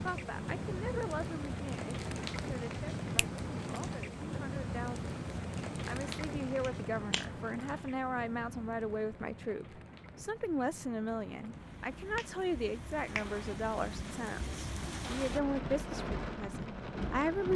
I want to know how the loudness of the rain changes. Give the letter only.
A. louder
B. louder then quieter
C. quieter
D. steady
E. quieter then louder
E.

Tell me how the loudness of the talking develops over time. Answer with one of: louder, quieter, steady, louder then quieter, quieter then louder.
louder.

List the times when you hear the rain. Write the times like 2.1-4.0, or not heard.
0.0-17.5.